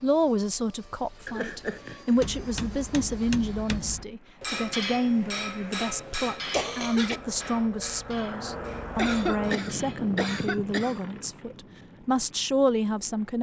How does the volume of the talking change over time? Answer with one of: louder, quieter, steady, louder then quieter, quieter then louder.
steady.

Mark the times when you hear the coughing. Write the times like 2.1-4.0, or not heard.
1.2-2.1, 6.5-7.2, 8.9-11.0.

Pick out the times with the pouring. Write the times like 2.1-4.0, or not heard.
not heard.